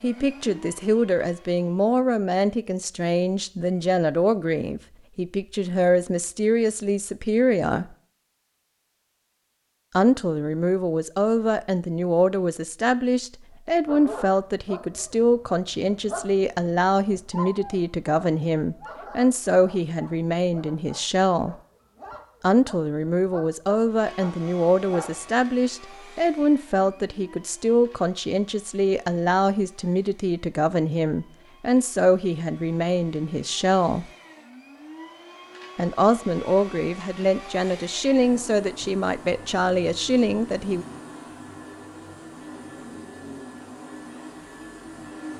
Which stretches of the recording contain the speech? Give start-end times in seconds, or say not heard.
0.0-7.8, 9.9-21.6, 22.4-34.0, 35.8-40.9.